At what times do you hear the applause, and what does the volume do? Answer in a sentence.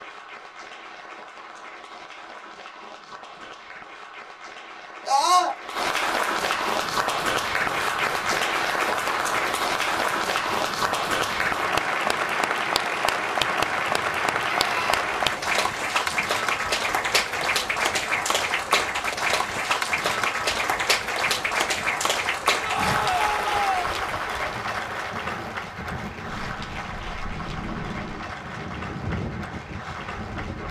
The applause can be heard from 0.0 to 30.6 s, getting louder then quieter.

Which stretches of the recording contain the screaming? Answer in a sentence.
The screaming can be heard from 5.0 to 5.5 s, from 14.4 to 15.1 s and from 22.6 to 23.9 s.